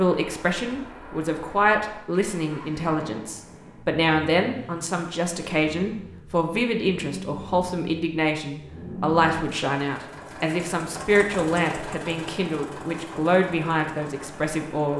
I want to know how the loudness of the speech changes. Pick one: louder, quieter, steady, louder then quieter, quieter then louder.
steady.